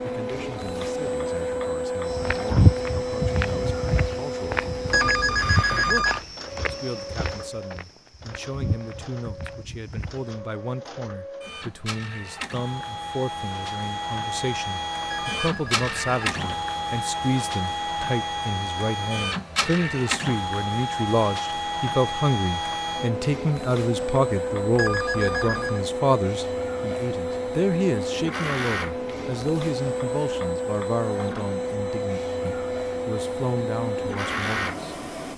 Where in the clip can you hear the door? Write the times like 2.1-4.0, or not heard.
not heard.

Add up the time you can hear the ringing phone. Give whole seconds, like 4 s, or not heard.
4 s.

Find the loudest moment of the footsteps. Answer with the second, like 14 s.
3 s.